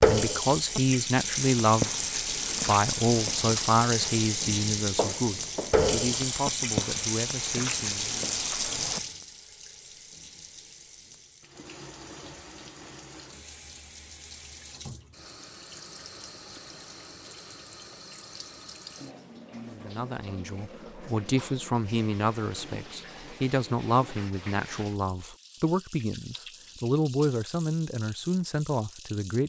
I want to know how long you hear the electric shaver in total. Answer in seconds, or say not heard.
not heard.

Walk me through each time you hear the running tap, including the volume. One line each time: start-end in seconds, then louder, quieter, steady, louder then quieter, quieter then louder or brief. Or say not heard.
0.0-29.4 quieter.